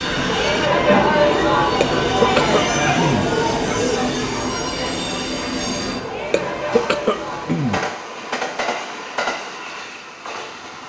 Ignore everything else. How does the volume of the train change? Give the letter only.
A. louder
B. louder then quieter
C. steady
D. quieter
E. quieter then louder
C.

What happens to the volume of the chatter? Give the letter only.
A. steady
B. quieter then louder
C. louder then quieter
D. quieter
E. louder
D.